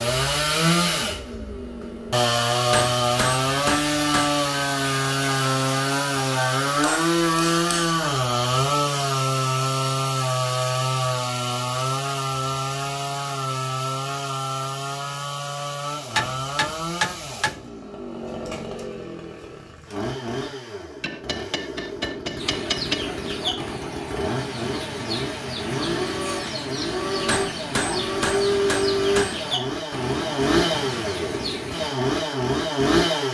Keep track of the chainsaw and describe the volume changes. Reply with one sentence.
The loudness of the chainsaw goes down, then up.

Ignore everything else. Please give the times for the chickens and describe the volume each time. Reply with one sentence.
The chickens can be heard from 22.4 to 31.9 s, at a steady volume.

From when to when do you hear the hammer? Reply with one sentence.
You can hear the hammer from 2.7 to 4.3 s, from 6.8 to 8.0 s, from 16.1 to 17.7 s, from 21.0 to 23.1 s and from 27.2 to 29.4 s.